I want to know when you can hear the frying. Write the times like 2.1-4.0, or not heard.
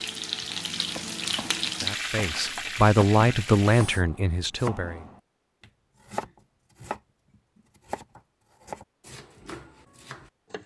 0.0-4.0.